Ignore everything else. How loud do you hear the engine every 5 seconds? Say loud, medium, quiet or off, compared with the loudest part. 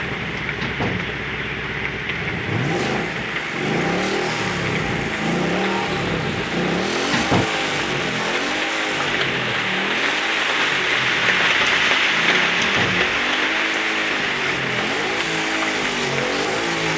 loud, loud, medium, loud.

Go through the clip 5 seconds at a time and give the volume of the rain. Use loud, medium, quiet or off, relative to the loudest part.
medium, medium, loud, medium.